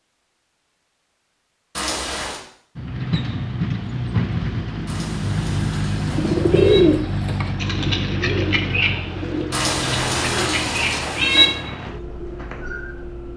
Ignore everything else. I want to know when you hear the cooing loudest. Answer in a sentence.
The volume of the cooing peaks at 7 seconds.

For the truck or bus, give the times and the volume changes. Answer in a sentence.
You can hear the truck or bus from 2.8 to 13.3 s, getting quieter.